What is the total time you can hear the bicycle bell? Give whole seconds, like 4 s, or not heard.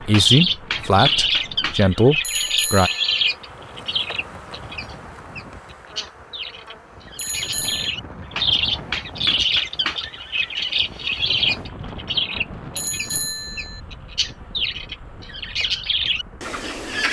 3 s.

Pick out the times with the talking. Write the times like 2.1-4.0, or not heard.
0.0-2.9.